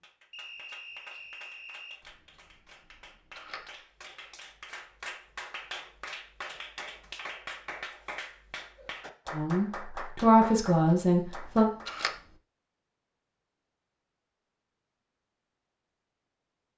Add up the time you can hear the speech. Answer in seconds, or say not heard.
2 s.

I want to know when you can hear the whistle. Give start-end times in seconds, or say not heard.
0.3-2.0.